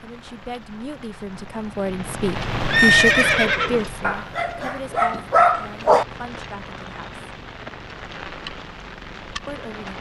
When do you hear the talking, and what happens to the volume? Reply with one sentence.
You can hear the talking from 0.0 to 7.2 s, getting louder then quieter; and briefly from 9.4 to 9.9 s.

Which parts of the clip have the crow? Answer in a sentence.
The crow can't be heard in this clip.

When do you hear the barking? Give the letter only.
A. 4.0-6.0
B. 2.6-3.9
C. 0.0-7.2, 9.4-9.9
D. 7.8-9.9
A.